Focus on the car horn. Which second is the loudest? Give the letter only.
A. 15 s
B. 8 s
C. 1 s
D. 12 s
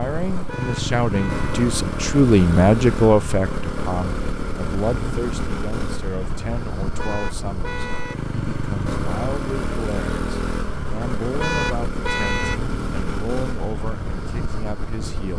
D.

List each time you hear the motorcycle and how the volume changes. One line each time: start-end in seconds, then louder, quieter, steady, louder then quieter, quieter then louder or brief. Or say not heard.
0.0-15.3 steady.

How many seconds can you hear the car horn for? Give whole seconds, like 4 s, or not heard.
4 s.